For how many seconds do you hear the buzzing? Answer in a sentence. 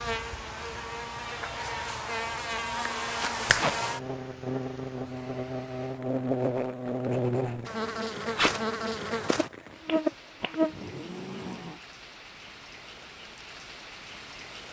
The buzzing can be heard for 12 seconds in total.